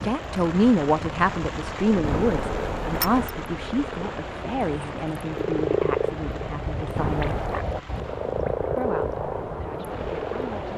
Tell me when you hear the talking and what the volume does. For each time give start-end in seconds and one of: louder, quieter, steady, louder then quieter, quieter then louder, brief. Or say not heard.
0.0-7.5 quieter
8.8-10.7 brief.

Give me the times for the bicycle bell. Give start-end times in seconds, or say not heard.
2.0-3.3, 7.0-7.7.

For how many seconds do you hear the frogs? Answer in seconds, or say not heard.
11 s.